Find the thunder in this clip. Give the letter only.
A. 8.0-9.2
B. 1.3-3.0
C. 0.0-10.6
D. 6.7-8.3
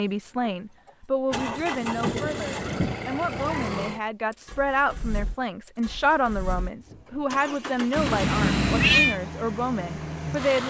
B.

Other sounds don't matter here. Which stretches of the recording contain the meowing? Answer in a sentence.
You can hear the meowing from 8.0 to 9.2 s.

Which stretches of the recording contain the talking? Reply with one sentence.
You can hear the talking from 0.0 to 10.6 s.